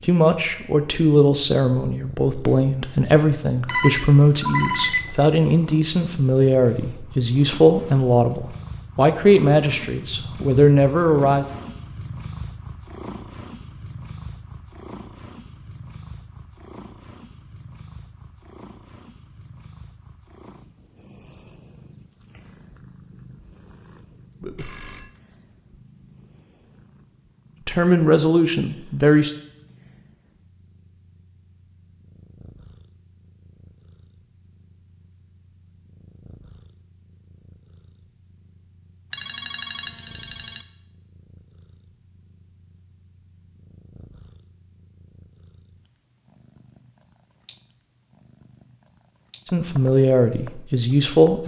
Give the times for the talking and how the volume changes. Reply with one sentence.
You can hear the talking from 0.0 to 11.4 s, at a steady volume; briefly from 27.6 to 29.3 s; and briefly from 49.5 to 51.4 s.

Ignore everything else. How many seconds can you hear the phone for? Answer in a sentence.
You can hear the phone for 4 seconds altogether.